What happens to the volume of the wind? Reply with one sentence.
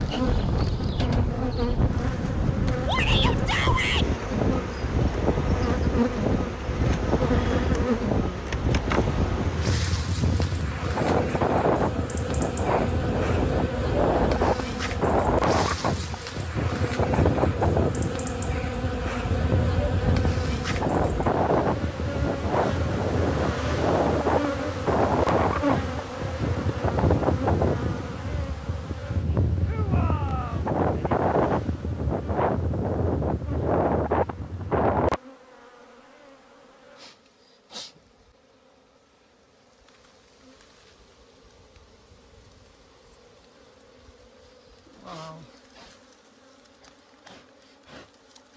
The volume of the wind stays about the same.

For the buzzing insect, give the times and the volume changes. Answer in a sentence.
You can hear the buzzing insect from 0.0 to 48.5 s, getting quieter.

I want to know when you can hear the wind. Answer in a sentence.
You can hear the wind from 0.0 to 35.2 s.